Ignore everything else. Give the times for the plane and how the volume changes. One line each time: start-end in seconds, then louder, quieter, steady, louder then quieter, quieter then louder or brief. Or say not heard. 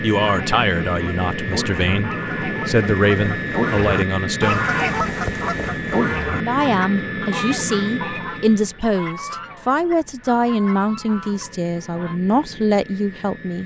0.0-13.6 quieter.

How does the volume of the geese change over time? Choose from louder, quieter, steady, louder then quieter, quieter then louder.
louder then quieter.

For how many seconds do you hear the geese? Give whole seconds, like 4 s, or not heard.
12 s.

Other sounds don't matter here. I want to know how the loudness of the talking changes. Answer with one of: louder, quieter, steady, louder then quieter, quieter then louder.
steady.